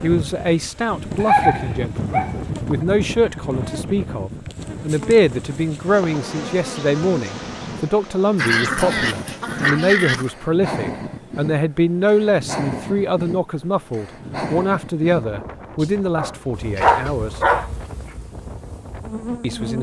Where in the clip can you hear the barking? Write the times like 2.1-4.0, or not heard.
1.2-2.8, 8.3-10.3, 15.8-17.7.